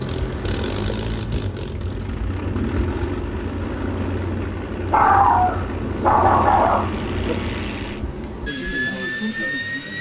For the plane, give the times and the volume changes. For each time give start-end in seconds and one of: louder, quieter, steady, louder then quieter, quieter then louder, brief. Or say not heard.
0.0-9.9 steady.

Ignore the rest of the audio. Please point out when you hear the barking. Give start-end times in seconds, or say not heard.
4.9-7.3.